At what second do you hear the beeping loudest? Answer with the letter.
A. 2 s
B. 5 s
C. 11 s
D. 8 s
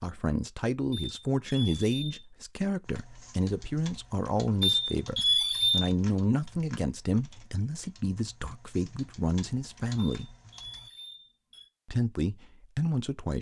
B.